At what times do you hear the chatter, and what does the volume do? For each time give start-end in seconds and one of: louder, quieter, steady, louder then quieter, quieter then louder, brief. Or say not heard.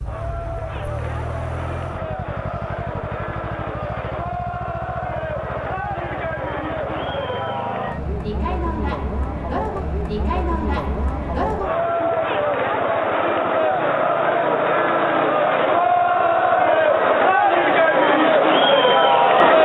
0.0-19.6 louder.